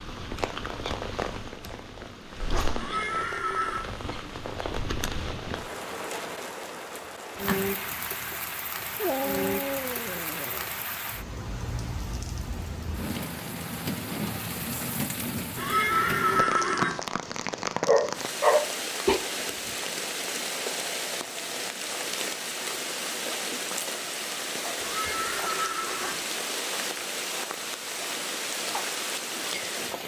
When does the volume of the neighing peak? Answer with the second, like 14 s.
16 s.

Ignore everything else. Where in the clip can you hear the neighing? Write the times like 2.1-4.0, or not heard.
2.8-3.9, 15.6-17.0, 24.8-26.2.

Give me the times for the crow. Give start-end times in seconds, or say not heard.
not heard.